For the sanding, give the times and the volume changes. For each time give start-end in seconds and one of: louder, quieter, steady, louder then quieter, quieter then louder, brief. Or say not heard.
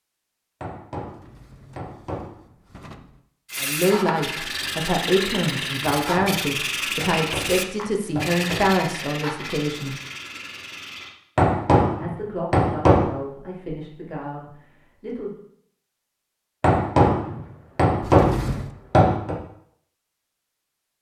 3.5-11.2 quieter.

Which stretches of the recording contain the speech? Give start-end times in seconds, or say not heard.
3.6-9.9, 12.0-15.3.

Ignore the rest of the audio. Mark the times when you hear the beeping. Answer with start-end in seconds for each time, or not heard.
not heard.